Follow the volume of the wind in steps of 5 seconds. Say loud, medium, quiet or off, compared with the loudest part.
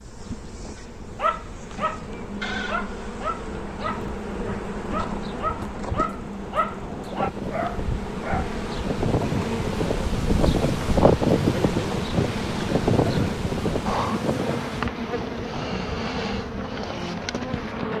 quiet, medium, loud, quiet.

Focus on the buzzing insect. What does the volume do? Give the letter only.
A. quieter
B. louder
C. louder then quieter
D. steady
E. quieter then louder
B.